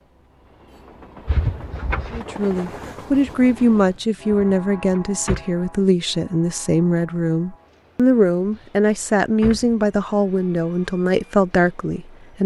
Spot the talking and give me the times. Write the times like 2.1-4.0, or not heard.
2.1-12.4.